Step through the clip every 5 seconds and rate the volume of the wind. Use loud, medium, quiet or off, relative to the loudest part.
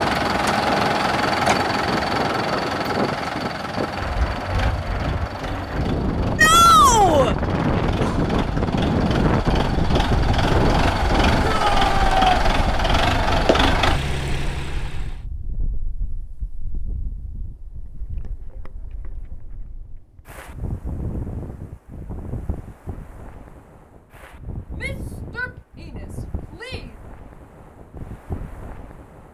medium, loud, loud, quiet, quiet, quiet.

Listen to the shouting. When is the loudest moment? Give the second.
7 s.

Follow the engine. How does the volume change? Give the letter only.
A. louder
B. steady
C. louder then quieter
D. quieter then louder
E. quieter
D.